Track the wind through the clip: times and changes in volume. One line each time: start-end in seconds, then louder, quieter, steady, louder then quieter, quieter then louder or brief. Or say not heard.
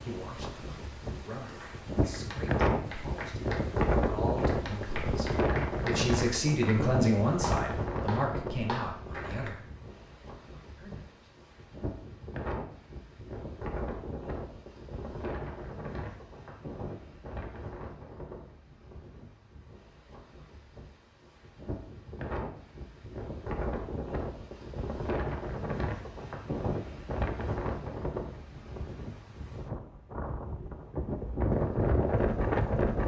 0.0-33.0 quieter then louder.